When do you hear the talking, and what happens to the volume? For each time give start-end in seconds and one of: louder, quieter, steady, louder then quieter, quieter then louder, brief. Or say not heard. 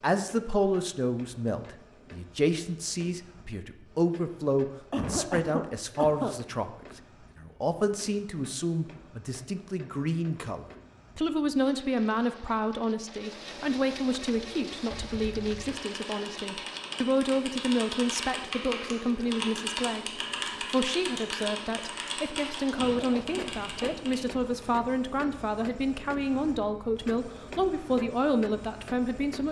0.0-29.4 steady.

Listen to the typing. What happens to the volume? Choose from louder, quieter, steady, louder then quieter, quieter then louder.
louder then quieter.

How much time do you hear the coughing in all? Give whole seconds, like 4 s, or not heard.
3 s.